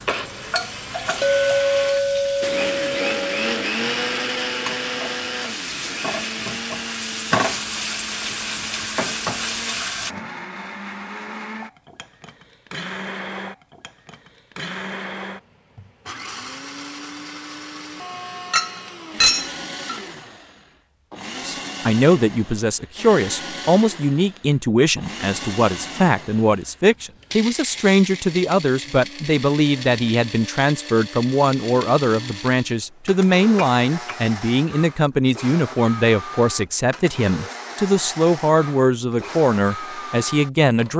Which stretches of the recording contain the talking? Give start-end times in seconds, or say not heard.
21.4-40.9.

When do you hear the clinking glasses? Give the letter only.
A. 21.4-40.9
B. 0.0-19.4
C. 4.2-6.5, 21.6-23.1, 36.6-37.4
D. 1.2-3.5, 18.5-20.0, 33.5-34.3
D.